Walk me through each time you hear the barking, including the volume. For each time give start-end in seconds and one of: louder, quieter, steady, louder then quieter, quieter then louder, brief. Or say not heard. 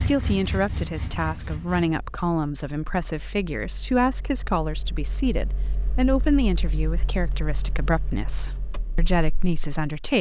not heard.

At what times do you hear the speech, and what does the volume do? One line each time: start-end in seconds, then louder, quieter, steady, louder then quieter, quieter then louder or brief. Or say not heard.
0.0-10.1 steady.